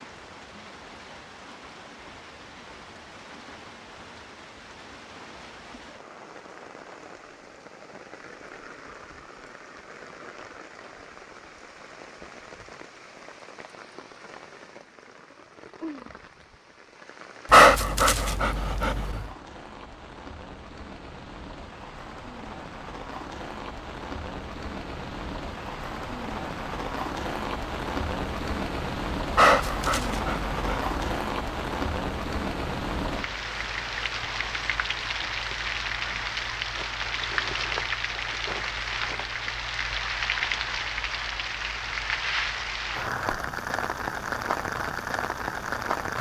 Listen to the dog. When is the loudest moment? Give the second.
18 s.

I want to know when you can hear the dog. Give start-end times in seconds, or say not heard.
17.5-19.2, 29.4-30.9.